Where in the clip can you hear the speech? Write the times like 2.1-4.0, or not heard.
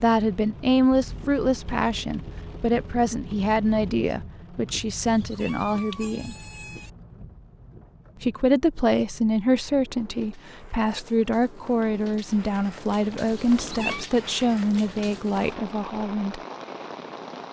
0.0-6.3, 8.2-16.4.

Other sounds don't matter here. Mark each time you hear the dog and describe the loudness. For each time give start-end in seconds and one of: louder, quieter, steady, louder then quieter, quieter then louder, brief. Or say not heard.
not heard.